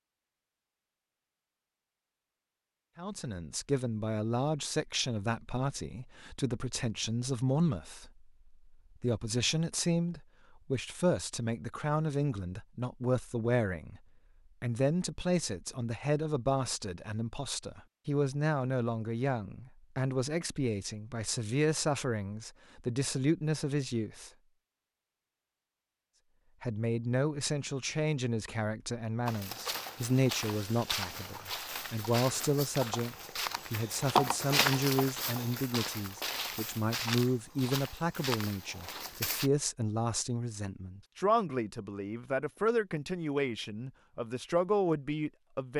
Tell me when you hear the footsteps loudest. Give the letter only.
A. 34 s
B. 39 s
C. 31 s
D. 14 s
A.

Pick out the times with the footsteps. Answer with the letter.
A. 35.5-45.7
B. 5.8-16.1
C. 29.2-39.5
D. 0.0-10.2
C.